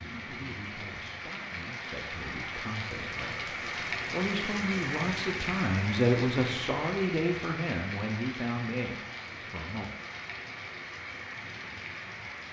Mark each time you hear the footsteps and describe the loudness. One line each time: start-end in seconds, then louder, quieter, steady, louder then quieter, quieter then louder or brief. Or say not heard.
not heard.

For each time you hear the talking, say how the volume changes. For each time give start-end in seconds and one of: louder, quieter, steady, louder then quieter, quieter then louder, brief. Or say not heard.
0.0-10.1 louder then quieter.